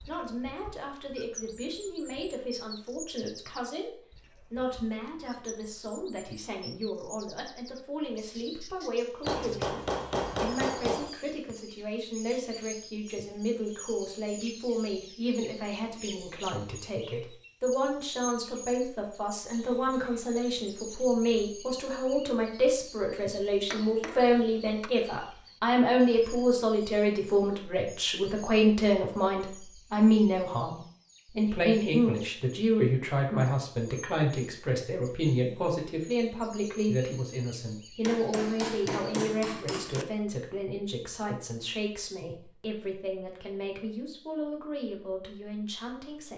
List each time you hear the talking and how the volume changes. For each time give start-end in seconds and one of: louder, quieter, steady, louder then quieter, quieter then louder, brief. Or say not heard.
0.1-46.3 louder then quieter.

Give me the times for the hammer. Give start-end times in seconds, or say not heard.
9.2-11.1, 23.7-24.9, 38.0-40.0.